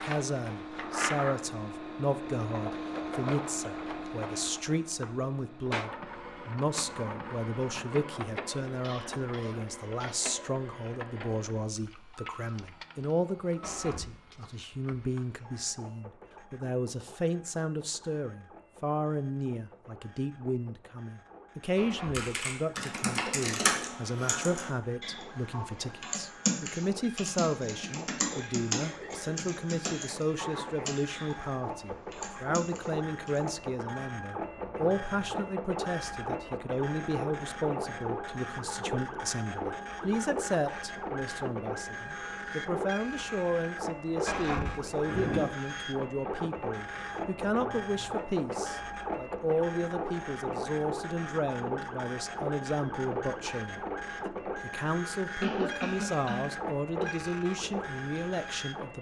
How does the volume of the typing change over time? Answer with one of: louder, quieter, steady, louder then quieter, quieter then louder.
quieter.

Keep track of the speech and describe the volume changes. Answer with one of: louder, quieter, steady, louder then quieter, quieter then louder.
steady.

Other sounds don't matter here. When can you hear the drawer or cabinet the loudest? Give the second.
45 s.